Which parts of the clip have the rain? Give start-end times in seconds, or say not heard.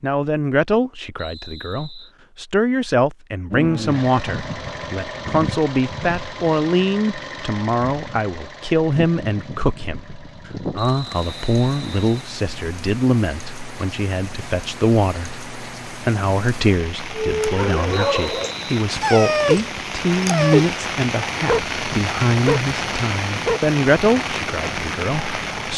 10.8-25.7.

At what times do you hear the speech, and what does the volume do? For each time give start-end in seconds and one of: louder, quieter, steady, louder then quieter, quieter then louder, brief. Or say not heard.
0.0-25.7 steady.